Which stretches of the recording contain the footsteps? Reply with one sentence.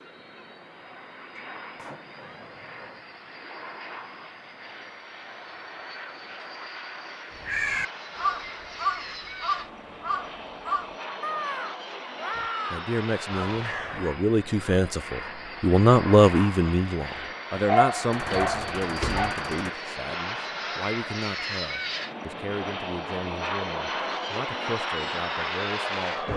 You can't hear the footsteps here.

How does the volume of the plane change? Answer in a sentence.
The volume of the plane goes up.